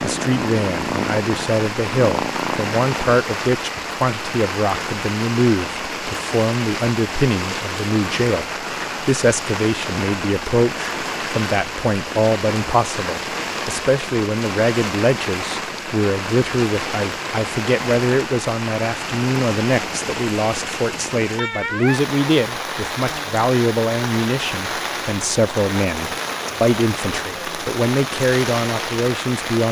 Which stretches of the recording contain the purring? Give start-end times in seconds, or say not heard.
0.0-3.2.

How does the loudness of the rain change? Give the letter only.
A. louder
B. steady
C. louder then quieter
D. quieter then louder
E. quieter
B.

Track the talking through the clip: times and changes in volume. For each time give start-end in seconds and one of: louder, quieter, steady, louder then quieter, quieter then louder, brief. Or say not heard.
0.0-29.6 steady.